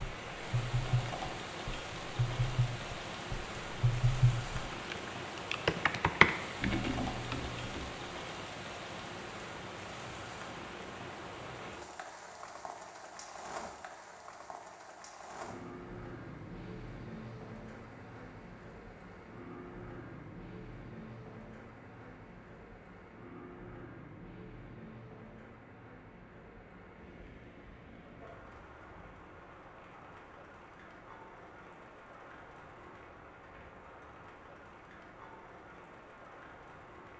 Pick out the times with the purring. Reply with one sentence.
You can't hear the purring here.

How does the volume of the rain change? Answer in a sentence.
The loudness of the rain goes down.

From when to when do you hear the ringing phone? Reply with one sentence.
The ringing phone can't be heard in this clip.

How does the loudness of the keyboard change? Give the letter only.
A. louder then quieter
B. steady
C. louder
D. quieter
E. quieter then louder
A.